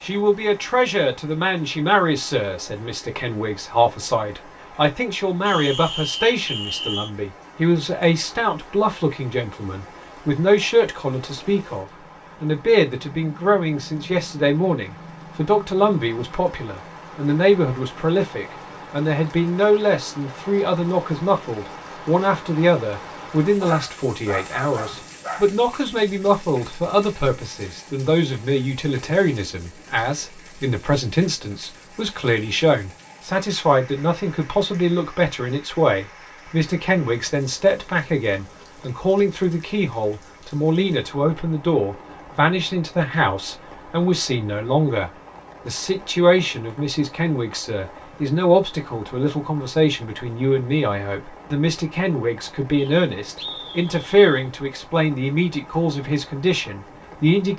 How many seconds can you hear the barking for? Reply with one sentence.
You can hear the barking for 2 seconds altogether.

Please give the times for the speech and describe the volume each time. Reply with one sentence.
The speech can be heard from 0.0 to 57.5 s, at a steady volume.